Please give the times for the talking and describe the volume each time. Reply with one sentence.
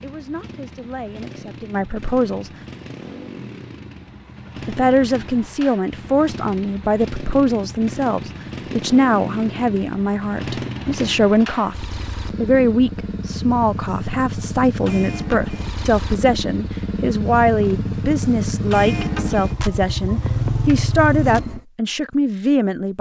The talking can be heard briefly from 0.0 to 2.5 s; and from 4.7 to 22.9 s, at a steady volume.